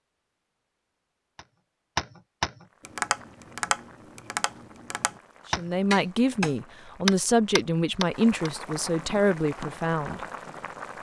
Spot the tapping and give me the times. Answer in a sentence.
You can hear the tapping from 1.4 to 10.7 s.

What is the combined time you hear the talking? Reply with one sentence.
You can hear the talking for 5 seconds altogether.